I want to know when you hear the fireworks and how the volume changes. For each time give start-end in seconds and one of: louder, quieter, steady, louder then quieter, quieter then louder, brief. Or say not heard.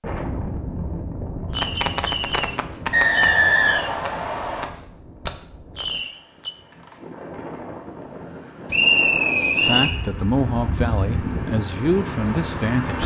1.5-6.5 quieter then louder.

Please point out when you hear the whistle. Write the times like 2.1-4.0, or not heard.
2.9-4.7, 8.7-9.9.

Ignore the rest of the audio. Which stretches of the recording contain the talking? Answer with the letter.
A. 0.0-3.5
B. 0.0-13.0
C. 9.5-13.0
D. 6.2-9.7
C.